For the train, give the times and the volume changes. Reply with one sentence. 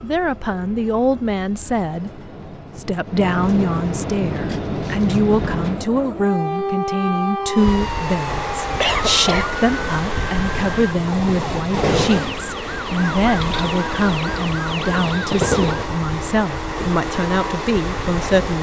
The train can be heard from 0.0 to 18.5 s, getting louder.